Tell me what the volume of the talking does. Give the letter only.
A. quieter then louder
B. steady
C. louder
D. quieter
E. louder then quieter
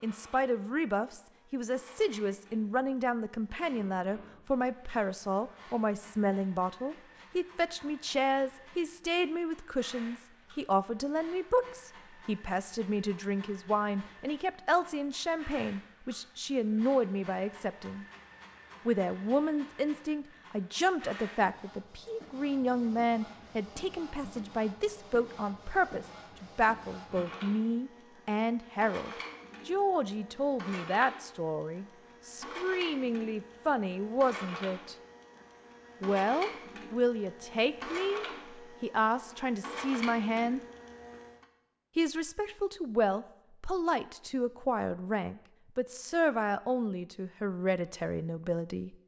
B.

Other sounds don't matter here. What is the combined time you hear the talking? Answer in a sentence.
The talking can be heard for 46 seconds in total.